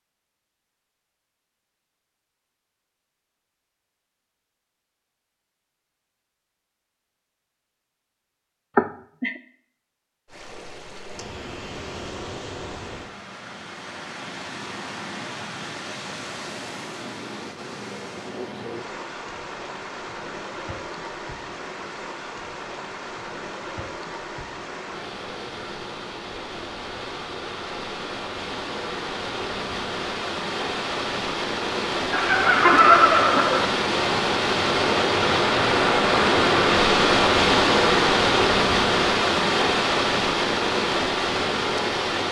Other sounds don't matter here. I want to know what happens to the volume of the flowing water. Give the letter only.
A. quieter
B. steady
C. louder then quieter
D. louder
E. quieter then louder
D.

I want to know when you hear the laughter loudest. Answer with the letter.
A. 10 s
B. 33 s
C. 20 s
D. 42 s
B.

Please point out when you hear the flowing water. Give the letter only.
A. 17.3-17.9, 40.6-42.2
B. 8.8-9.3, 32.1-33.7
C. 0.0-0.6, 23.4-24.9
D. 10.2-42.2
D.